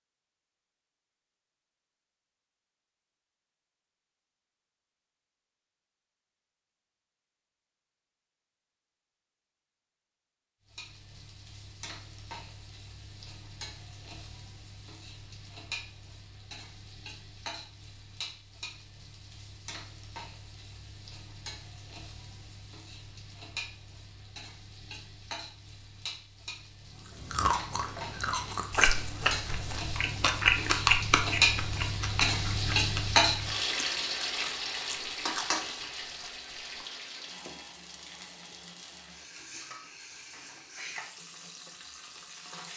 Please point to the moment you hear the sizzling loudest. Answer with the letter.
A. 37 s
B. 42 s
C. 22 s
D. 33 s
D.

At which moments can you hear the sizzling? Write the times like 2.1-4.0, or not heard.
10.7-42.7.